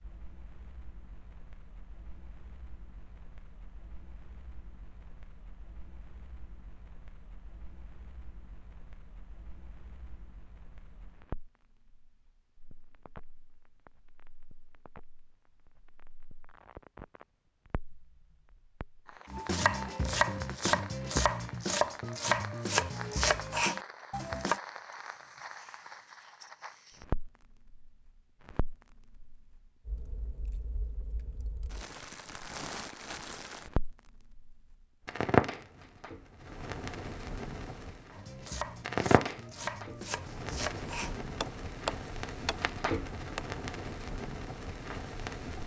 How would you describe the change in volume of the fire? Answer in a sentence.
The volume of the fire goes up.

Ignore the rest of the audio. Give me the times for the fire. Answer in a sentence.
The fire can be heard from 0.0 to 45.6 s.